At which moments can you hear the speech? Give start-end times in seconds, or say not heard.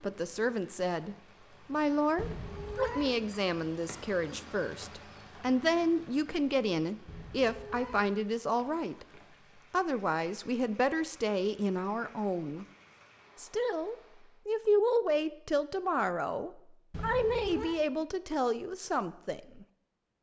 0.0-9.1, 9.7-12.7, 13.3-19.6.